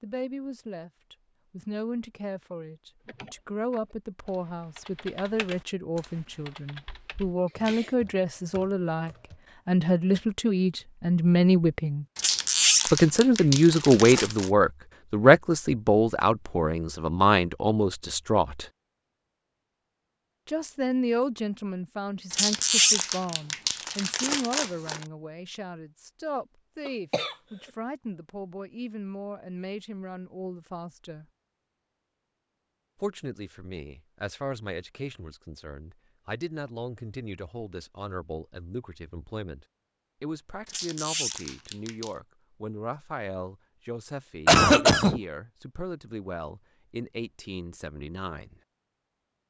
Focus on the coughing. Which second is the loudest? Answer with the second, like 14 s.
45 s.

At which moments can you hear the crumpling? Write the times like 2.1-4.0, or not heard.
12.2-14.5, 22.3-25.1, 40.6-42.1.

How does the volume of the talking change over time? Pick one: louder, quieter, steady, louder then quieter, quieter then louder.
louder then quieter.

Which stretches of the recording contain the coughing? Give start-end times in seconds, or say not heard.
6.8-7.9, 26.9-27.4, 44.5-45.2.